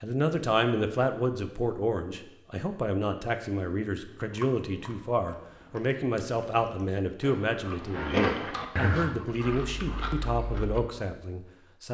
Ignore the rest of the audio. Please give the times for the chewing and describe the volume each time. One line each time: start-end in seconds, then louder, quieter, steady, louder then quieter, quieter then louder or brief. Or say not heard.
4.0-10.8 louder then quieter.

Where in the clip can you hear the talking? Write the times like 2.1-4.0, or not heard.
0.0-11.8.